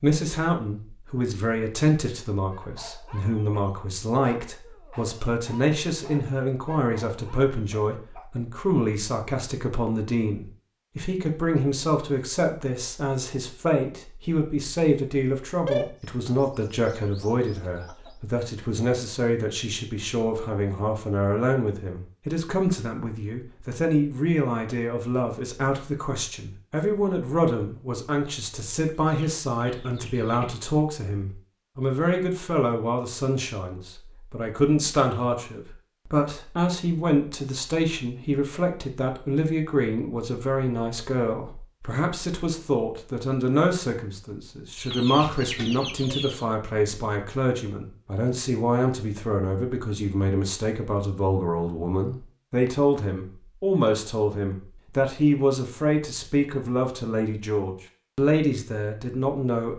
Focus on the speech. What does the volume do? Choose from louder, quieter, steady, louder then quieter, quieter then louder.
steady.